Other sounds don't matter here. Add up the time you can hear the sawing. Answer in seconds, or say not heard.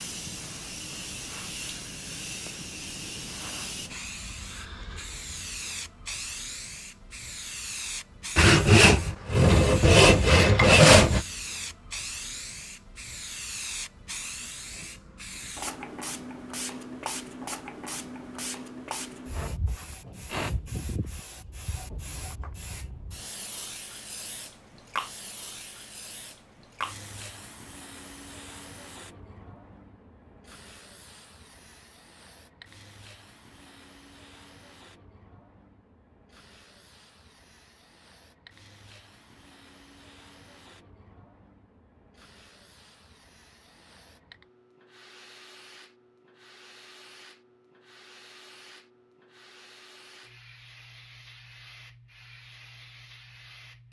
3 s.